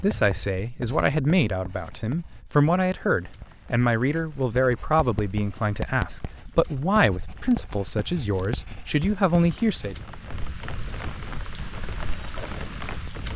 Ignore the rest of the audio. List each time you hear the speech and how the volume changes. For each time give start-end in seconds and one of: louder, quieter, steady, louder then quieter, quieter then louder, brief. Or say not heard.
0.0-9.9 steady.